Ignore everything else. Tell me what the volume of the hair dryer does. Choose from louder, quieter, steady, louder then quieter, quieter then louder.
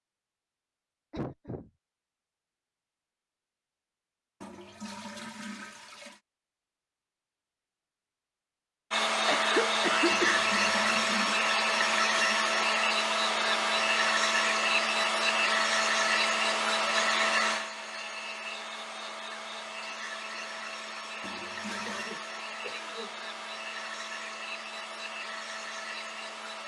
quieter.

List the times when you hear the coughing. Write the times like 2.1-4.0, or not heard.
1.1-1.7, 9.1-10.4, 21.6-23.2.